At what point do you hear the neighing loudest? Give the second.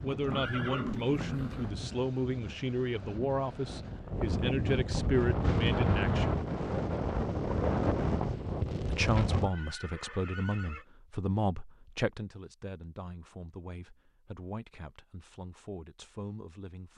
1 s.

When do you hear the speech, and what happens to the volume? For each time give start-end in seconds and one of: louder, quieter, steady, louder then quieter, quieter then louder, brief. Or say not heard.
0.0-6.5 steady
8.9-16.9 quieter.